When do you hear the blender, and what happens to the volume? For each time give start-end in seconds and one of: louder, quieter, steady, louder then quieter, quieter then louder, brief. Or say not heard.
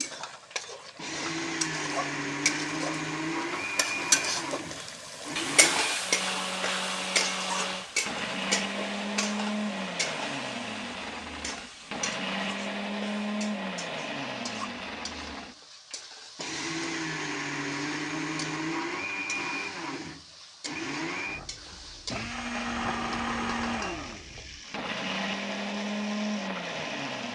0.0-27.2 steady.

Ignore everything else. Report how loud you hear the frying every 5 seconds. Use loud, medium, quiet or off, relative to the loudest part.
loud, loud, medium, quiet, quiet, quiet.